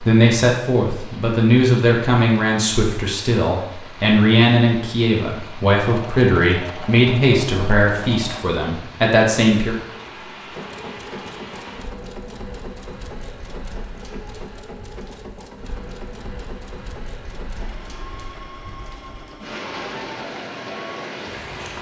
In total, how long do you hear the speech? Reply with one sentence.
You can hear the speech for 10 seconds altogether.